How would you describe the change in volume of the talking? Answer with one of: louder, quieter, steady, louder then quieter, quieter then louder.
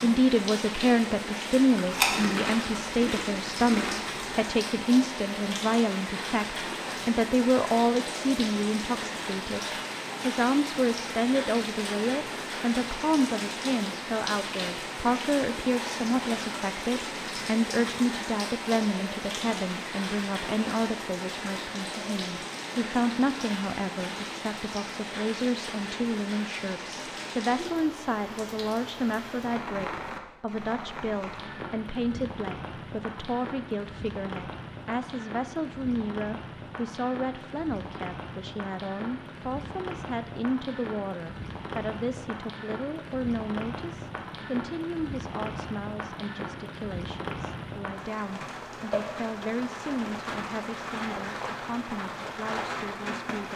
quieter.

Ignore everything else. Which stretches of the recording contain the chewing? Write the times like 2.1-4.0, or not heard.
1.8-4.2.